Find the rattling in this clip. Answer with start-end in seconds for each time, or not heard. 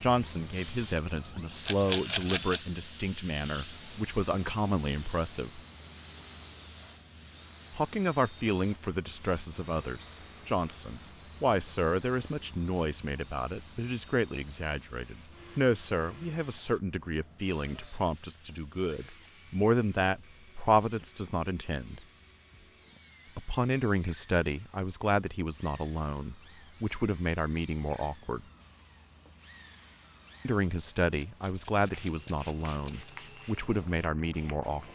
1.6-2.6, 31.1-33.1.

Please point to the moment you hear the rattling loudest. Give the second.
2 s.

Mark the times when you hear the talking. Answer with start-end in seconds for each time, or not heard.
0.0-5.6, 7.7-22.0, 23.4-28.4, 30.4-34.9.